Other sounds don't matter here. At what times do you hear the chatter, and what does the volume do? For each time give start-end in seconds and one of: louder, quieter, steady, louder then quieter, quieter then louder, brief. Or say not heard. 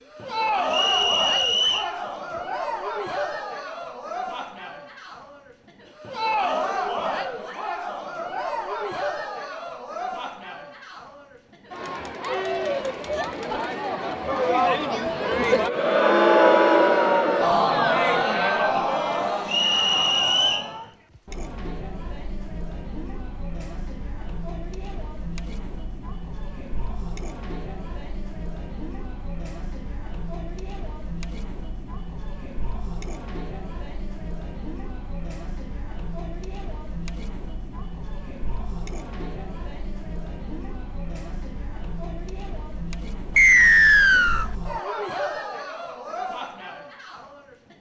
0.0-47.7 louder then quieter.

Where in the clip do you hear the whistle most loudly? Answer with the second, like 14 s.
44 s.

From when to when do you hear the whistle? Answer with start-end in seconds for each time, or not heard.
0.7-1.9, 19.4-20.7, 43.4-44.5.